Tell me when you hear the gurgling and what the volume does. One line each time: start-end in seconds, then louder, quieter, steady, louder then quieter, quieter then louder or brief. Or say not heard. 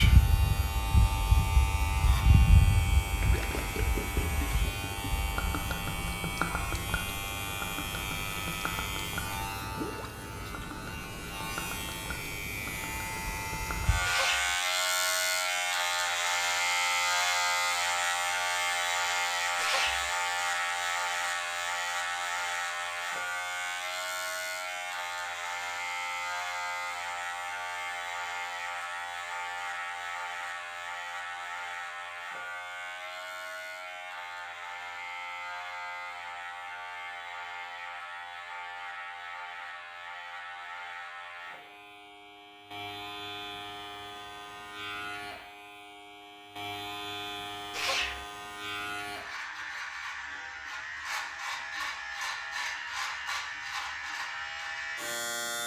3.1-14.2 quieter.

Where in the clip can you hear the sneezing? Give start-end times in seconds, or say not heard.
14.1-14.6, 19.6-20.1, 47.7-48.2.